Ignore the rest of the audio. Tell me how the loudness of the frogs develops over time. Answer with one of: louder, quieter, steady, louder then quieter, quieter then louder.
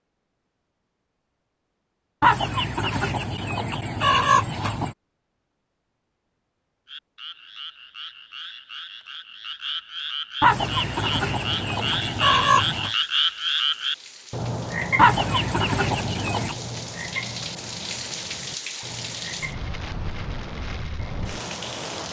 louder then quieter.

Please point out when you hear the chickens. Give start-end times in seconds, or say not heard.
2.2-5.0, 10.4-12.9, 14.9-16.6.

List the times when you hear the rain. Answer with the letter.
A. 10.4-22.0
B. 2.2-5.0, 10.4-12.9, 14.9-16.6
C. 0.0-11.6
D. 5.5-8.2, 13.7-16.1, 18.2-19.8
A.